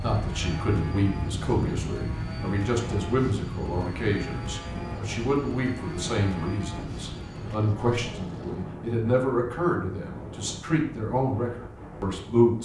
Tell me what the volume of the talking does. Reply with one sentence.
The loudness of the talking stays about the same.